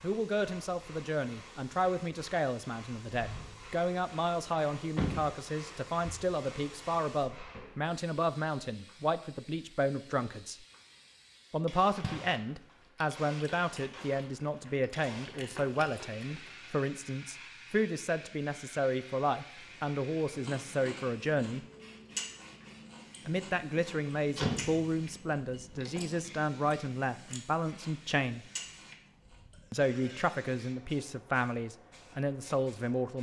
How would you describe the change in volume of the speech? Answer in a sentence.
The volume of the speech stays about the same.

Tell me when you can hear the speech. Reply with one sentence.
The speech can be heard from 0.0 to 10.6 s, from 11.5 to 21.6 s, from 23.2 to 28.4 s and from 29.7 to 33.1 s.